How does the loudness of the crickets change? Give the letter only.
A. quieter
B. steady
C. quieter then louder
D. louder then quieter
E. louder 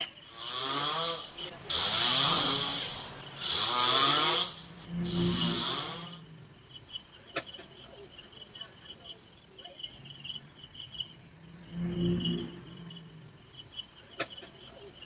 B.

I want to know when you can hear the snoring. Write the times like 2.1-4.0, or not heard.
0.2-6.2.